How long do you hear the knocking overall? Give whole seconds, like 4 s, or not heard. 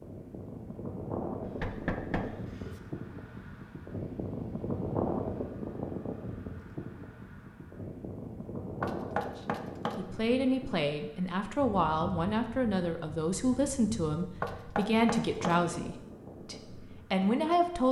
4 s.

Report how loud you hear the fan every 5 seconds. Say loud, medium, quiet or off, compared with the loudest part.
loud, loud, medium, medium.